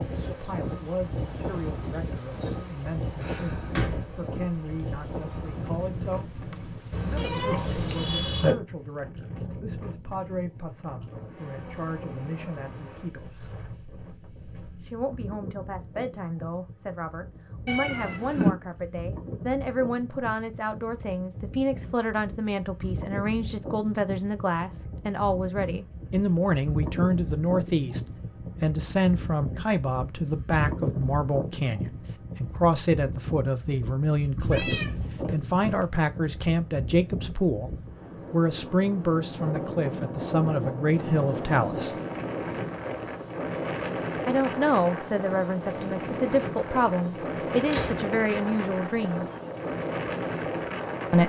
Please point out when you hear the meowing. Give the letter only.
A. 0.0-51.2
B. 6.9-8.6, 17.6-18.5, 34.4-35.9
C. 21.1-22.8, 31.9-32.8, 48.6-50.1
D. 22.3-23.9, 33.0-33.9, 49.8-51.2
B.